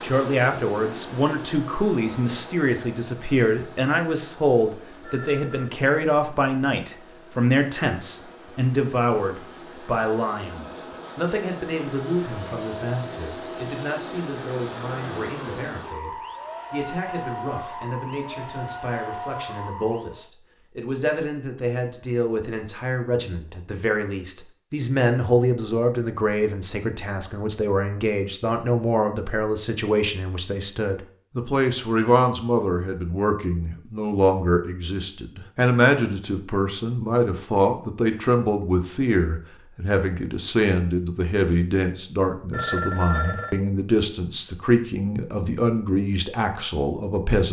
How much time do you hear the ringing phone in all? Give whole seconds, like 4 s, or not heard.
2 s.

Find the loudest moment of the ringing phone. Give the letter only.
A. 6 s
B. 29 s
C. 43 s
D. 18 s
C.